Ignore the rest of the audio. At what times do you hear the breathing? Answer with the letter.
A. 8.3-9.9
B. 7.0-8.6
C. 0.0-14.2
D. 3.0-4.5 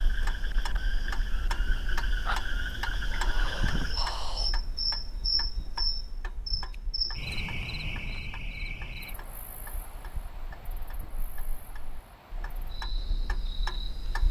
D.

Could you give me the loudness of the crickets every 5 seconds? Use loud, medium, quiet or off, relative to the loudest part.
loud, loud, quiet.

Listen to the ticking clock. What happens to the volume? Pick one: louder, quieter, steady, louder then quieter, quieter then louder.
quieter then louder.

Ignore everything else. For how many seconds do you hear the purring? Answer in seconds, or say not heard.
not heard.